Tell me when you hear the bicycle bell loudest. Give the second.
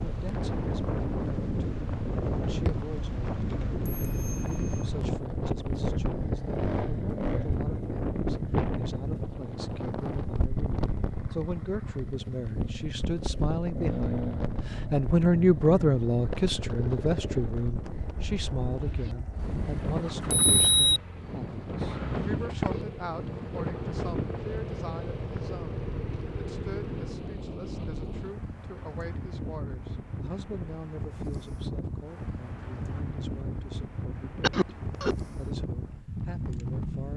21 s.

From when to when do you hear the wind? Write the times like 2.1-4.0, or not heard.
0.0-37.1.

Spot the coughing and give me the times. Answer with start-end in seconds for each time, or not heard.
34.4-35.1.